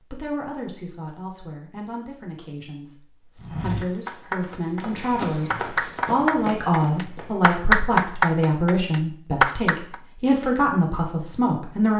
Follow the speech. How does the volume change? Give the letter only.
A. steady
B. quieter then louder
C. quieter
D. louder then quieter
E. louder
E.